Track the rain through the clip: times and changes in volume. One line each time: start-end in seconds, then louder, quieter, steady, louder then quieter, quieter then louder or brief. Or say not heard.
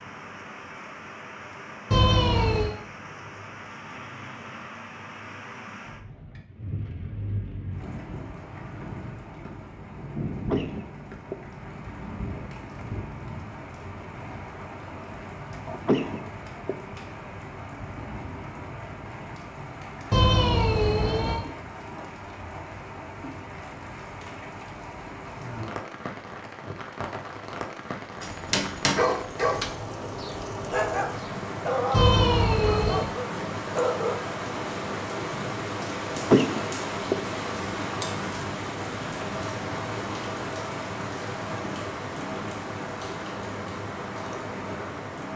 0.0-45.3 louder.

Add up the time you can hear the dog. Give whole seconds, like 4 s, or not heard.
6 s.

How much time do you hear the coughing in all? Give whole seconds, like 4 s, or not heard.
3 s.